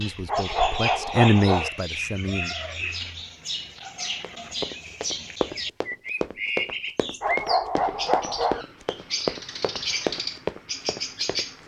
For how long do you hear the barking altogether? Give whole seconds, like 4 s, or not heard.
3 s.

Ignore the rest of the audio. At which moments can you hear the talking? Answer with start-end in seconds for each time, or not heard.
0.0-2.5.